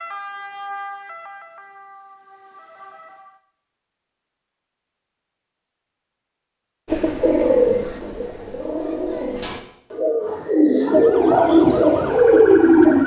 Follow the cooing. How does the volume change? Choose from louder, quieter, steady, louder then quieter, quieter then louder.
quieter then louder.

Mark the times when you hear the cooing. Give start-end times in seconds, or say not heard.
6.8-13.0.